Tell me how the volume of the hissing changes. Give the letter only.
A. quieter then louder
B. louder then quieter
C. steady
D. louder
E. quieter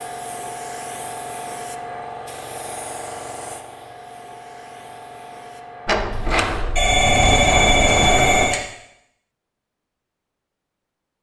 E.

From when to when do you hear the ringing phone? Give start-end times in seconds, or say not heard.
6.8-8.6.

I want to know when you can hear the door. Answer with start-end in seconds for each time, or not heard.
5.8-8.6.